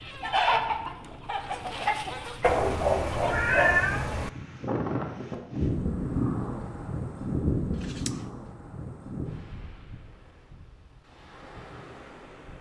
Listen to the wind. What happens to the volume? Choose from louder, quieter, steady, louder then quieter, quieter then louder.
louder then quieter.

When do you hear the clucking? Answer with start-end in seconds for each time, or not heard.
0.0-3.4.